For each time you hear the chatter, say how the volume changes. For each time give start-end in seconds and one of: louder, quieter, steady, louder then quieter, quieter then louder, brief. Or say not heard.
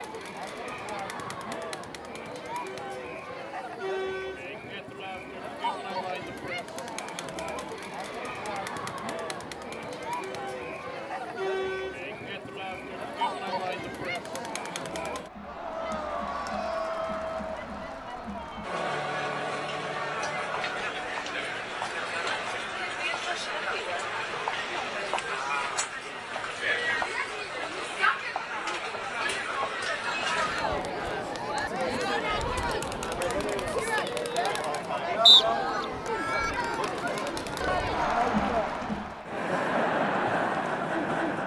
0.0-41.4 louder.